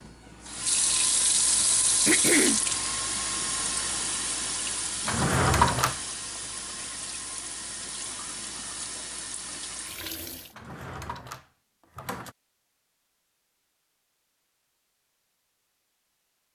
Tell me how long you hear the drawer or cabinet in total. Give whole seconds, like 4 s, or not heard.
3 s.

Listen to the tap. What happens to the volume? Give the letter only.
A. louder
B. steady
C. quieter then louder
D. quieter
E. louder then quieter
D.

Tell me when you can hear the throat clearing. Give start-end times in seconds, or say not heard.
1.6-2.6.